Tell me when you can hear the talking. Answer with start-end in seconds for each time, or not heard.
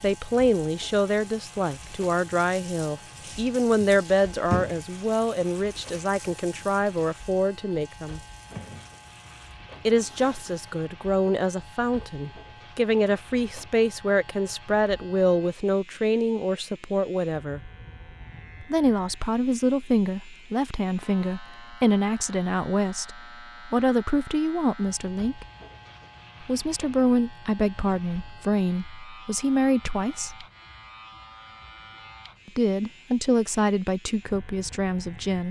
0.0-8.2, 9.8-17.6, 18.6-25.4, 26.4-30.4, 32.5-35.4.